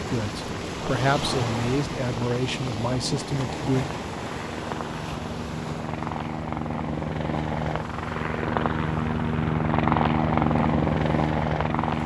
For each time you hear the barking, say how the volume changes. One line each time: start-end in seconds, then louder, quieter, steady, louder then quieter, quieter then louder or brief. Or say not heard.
not heard.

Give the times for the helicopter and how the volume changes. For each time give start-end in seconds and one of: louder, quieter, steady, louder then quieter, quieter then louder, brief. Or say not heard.
0.2-12.0 louder.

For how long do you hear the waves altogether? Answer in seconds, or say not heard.
12 s.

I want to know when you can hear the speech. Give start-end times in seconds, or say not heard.
0.0-3.9.